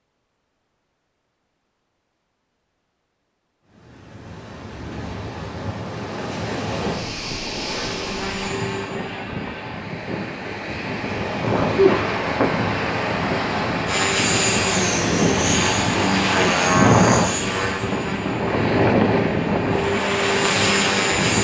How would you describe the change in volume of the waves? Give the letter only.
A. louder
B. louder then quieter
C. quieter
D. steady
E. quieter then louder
A.